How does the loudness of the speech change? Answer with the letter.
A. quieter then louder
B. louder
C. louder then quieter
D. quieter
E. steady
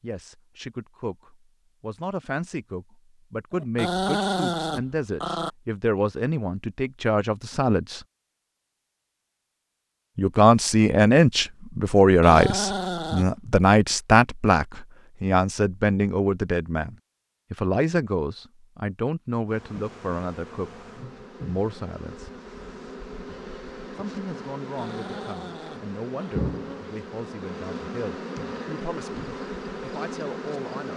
C.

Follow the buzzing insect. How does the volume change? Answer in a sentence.
The loudness of the buzzing insect goes up.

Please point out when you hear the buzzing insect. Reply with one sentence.
You can hear the buzzing insect from 19.4 to 30.9 s.